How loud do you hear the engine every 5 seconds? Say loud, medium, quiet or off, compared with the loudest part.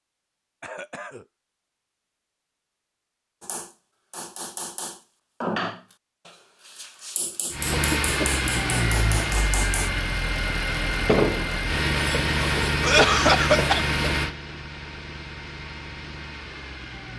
off, loud, loud, quiet.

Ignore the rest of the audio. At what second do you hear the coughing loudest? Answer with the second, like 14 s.
13 s.